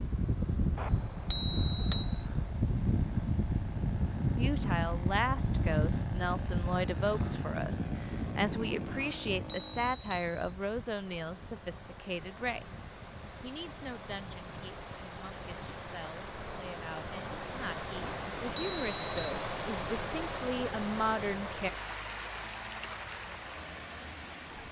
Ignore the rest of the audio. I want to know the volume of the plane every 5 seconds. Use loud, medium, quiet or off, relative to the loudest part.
loud, loud, quiet, quiet, quiet.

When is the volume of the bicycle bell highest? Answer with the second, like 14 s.
1 s.